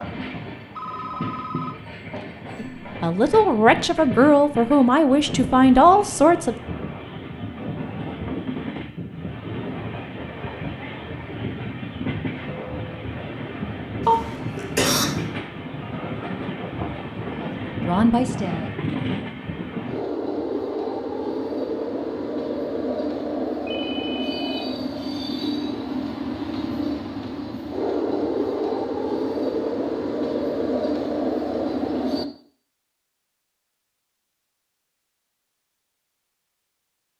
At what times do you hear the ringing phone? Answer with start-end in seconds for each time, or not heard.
0.8-2.2, 23.6-24.6.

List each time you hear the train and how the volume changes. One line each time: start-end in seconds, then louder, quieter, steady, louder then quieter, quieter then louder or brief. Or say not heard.
0.0-32.2 louder.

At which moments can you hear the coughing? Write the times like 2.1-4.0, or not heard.
14.1-15.1.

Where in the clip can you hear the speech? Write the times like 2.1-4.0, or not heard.
2.5-6.5, 17.1-18.7.